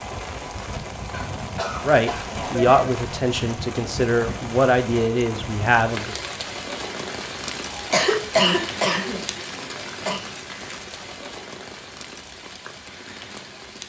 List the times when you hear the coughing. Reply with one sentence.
The coughing can be heard from 1.1 to 2.3 s and from 7.7 to 10.2 s.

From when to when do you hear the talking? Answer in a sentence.
You can hear the talking from 1.8 to 6.2 s.